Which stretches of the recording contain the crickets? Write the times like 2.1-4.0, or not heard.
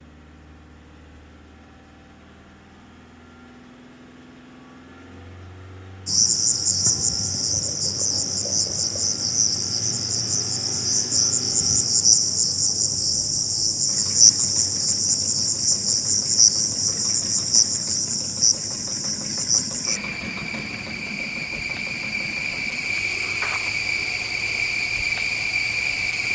6.0-26.2.